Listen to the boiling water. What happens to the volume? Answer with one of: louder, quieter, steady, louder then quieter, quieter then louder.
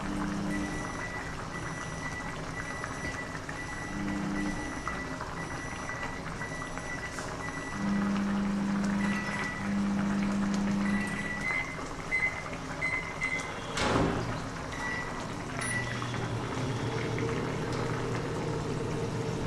steady.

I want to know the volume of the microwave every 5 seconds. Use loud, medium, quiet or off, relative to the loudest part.
medium, loud, loud, loud.